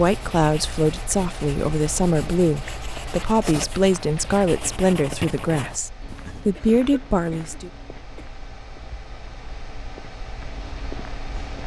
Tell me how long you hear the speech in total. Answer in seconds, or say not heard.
8 s.